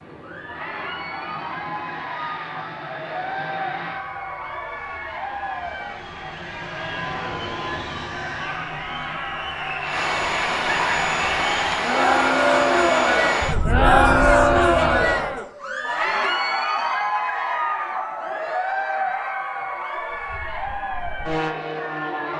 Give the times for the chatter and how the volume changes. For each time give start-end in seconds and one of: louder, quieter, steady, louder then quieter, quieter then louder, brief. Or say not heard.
0.1-22.3 louder then quieter.